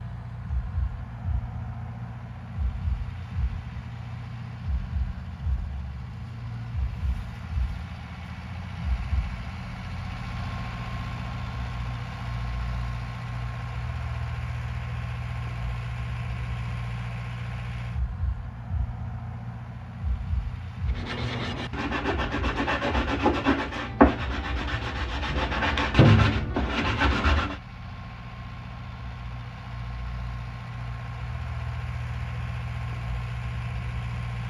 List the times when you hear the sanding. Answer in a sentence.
The sanding can be heard from 20.9 to 27.6 s.